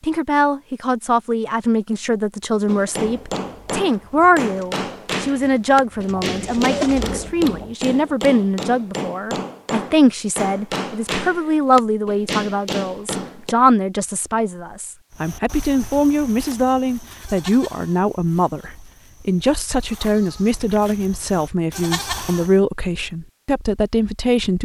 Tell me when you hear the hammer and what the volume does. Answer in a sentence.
The hammer can be heard from 2.6 to 13.6 s, at a steady volume.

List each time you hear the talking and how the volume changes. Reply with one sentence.
You can hear the talking from 0.0 to 24.5 s, at a steady volume.